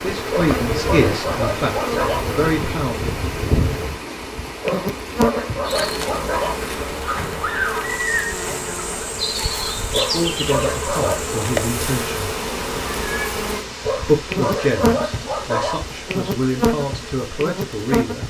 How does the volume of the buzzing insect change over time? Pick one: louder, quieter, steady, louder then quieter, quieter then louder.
steady.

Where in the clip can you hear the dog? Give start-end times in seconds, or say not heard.
0.3-2.2, 4.6-6.5, 9.9-11.3, 13.8-15.8.